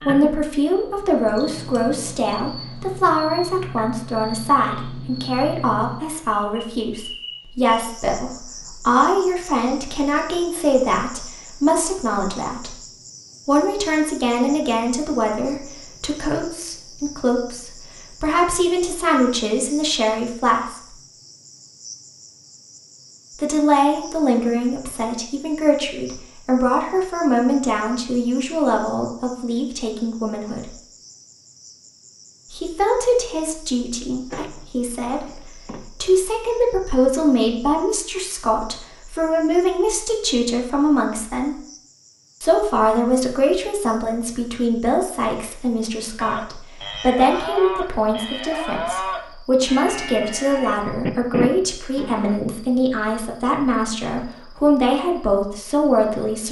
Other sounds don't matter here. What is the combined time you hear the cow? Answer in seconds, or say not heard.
6 s.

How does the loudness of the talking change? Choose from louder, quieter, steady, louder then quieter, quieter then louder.
steady.